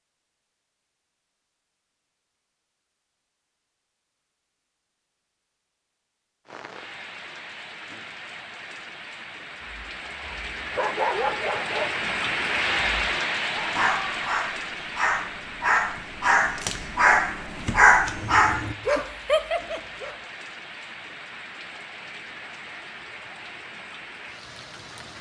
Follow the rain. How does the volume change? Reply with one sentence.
The volume of the rain goes up, then down.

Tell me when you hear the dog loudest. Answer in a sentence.
The volume of the dog peaks at 18 seconds.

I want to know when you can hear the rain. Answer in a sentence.
The rain can be heard from 6.5 to 25.1 s.